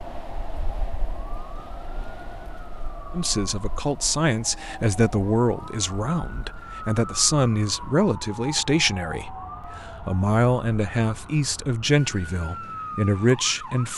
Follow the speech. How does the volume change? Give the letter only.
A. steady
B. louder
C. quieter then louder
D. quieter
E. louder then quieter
A.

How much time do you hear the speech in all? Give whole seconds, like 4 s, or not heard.
11 s.